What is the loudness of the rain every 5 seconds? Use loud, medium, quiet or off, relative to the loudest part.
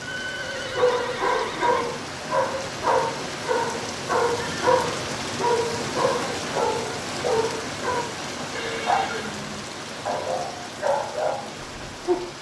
loud, loud, medium.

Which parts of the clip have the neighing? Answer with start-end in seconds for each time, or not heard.
0.0-2.0, 4.3-4.8, 8.6-9.3.